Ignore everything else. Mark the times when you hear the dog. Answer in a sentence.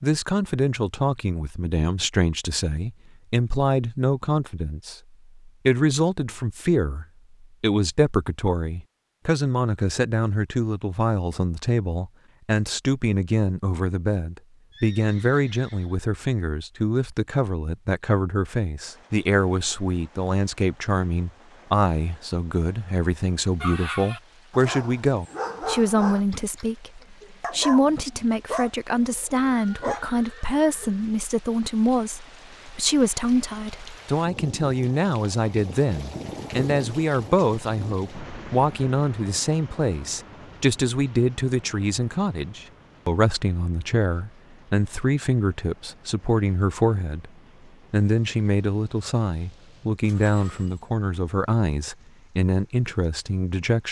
The dog can be heard from 23.6 to 26.6 s and from 27.4 to 30.1 s.